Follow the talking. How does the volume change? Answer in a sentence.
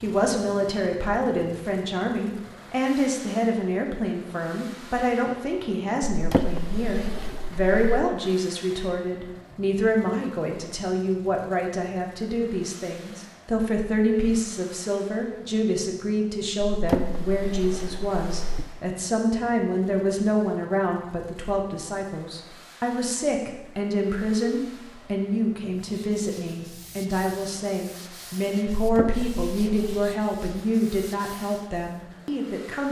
The loudness of the talking stays about the same.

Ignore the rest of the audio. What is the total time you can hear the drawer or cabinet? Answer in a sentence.
You can hear the drawer or cabinet for 5 seconds altogether.